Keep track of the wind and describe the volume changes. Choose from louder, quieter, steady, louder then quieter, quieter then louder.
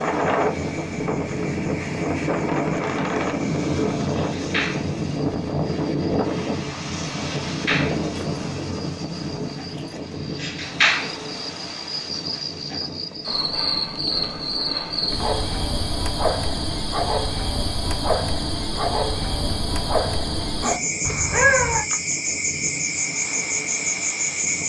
quieter.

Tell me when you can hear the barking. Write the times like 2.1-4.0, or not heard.
not heard.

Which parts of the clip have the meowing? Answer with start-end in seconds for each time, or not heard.
21.1-21.9.